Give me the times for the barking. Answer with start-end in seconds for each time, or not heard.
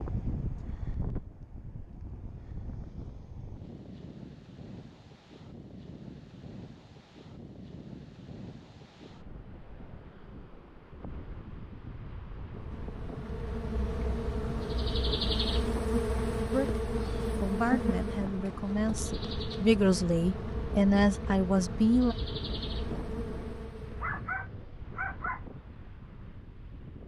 23.9-25.4.